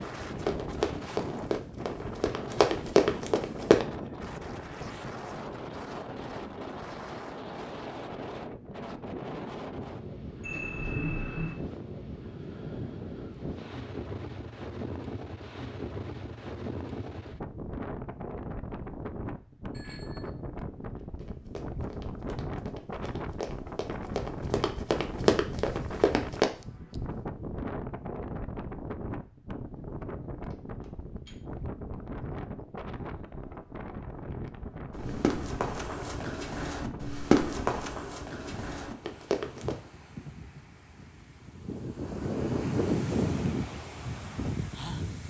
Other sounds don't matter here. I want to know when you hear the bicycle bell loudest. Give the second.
11 s.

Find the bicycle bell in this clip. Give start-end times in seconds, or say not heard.
10.4-11.6, 19.7-20.3, 30.5-31.4.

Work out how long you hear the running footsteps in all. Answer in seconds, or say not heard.
14 s.